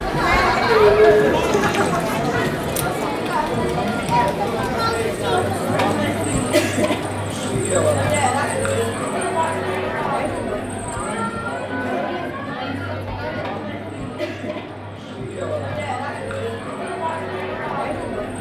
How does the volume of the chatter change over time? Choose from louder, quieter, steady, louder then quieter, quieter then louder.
quieter.